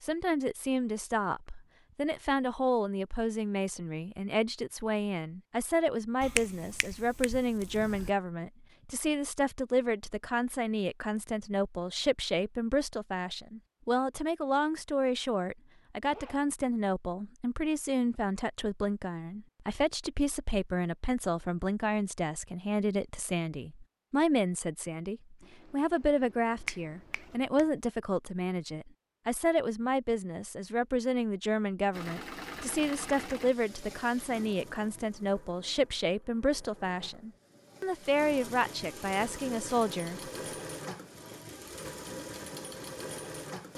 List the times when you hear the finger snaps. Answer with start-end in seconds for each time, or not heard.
6.2-8.1, 26.6-27.7.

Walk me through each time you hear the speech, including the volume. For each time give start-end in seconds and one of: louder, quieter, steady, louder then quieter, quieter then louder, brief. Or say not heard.
0.0-40.3 steady.